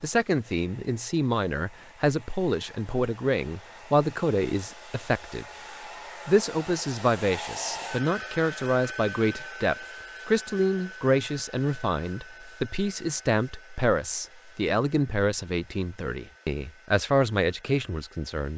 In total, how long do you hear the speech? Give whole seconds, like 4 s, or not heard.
18 s.